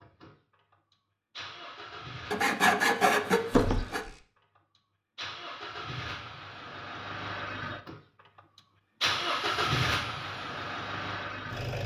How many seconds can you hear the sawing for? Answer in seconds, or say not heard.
2 s.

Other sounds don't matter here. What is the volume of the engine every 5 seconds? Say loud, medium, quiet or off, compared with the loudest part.
quiet, loud, loud.